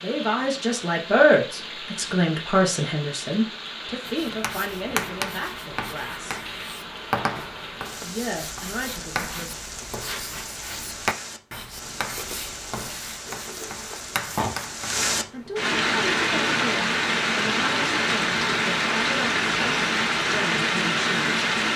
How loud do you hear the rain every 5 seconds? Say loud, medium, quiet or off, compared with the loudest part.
quiet, quiet, quiet, loud, loud.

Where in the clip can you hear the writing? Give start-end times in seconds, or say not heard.
4.0-15.0.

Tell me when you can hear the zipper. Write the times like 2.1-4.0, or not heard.
13.2-14.2.